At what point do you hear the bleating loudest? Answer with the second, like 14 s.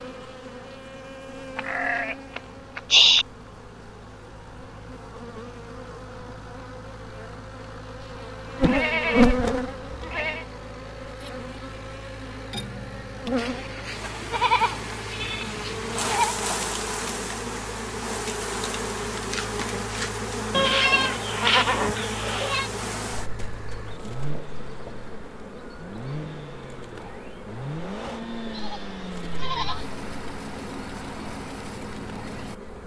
3 s.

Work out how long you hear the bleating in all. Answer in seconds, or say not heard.
10 s.